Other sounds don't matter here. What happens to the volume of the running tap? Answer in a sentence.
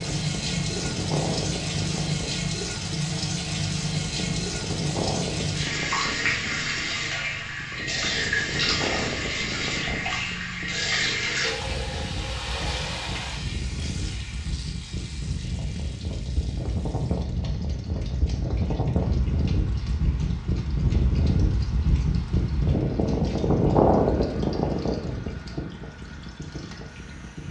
The volume of the running tap goes down.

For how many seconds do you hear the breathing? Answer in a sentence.
You can't hear the breathing here.